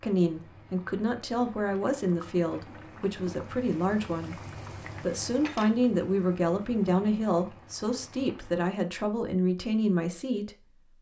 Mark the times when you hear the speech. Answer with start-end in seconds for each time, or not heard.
0.0-10.8.